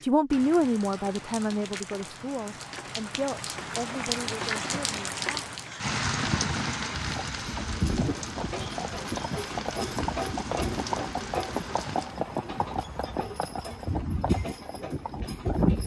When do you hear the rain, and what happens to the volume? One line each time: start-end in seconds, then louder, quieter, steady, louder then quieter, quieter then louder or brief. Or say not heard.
0.0-12.2 louder then quieter.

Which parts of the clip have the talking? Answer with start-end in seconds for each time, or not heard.
0.0-5.5.